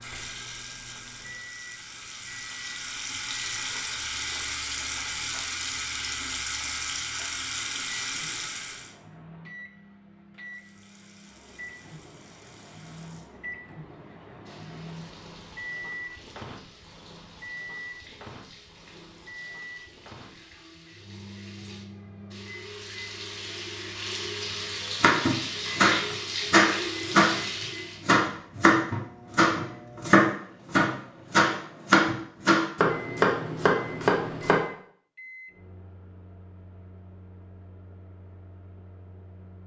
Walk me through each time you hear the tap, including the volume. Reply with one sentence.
You can hear the tap from 0.0 to 8.9 s, getting louder; and from 10.4 to 28.1 s, getting louder.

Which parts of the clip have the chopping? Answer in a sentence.
The chopping can be heard from 25.0 to 27.4 s and from 28.0 to 34.6 s.